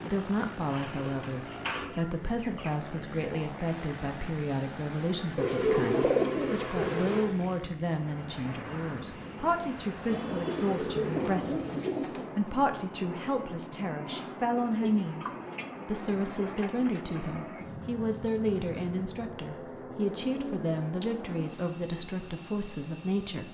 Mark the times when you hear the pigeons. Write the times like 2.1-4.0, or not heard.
0.7-2.8, 5.3-7.3, 10.1-12.3, 14.6-17.2, 20.3-21.5.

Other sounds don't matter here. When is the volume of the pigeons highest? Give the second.
6 s.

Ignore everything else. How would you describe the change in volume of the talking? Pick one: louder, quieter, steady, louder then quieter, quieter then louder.
steady.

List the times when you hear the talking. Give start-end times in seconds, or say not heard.
0.0-23.5.